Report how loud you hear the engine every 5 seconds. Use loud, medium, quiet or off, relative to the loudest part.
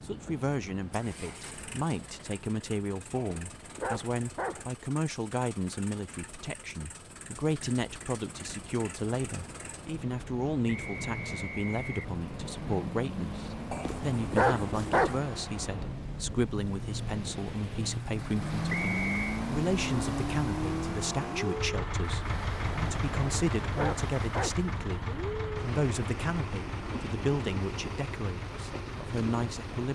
quiet, quiet, medium, loud, loud, medium.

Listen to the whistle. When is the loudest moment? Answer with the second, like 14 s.
19 s.